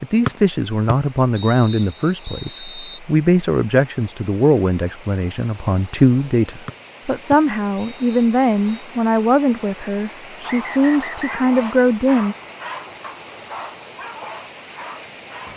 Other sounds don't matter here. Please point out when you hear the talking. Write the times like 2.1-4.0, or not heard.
0.0-12.3.